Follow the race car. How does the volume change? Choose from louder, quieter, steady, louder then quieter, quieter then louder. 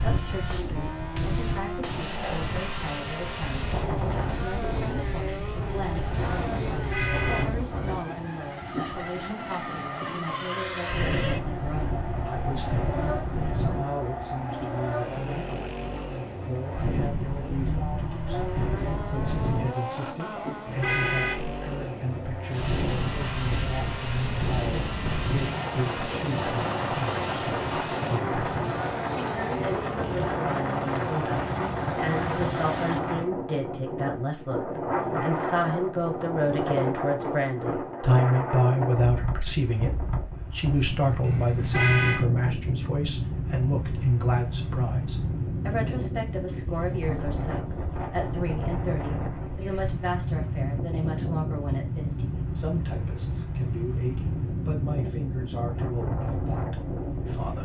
steady.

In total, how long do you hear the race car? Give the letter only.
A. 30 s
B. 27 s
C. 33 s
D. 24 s
C.